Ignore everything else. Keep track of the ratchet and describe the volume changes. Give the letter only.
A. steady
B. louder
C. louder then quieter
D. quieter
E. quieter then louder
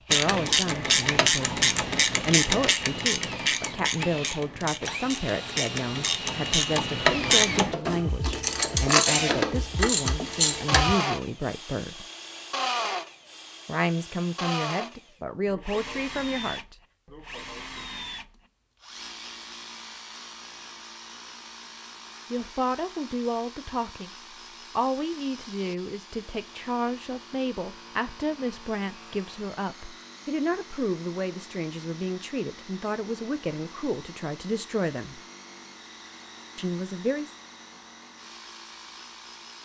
E.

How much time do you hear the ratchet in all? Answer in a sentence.
The ratchet can be heard for 11 seconds in total.